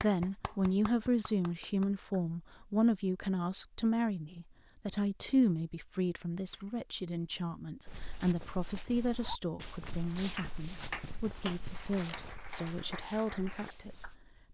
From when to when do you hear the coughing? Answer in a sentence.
You can't hear the coughing here.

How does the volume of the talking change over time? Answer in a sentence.
The loudness of the talking goes down.